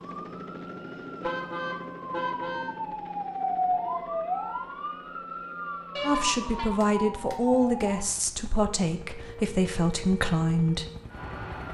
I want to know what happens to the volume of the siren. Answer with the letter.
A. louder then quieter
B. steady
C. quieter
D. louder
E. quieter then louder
A.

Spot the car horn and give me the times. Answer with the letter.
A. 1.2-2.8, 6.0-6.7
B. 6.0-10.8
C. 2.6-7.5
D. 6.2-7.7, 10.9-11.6
A.